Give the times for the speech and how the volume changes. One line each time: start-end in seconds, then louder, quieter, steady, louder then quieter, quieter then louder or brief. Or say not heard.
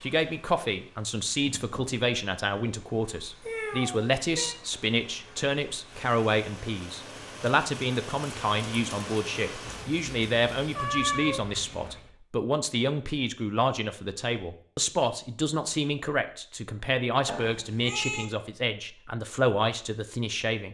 0.0-20.7 steady.